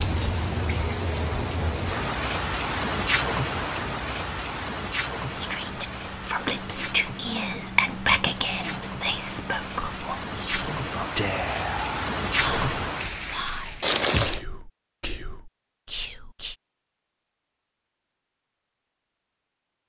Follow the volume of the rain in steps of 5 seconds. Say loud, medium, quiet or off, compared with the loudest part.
loud, medium, loud, off.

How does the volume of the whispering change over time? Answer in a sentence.
The loudness of the whispering goes down.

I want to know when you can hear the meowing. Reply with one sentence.
The meowing can be heard from 13.8 to 14.4 s.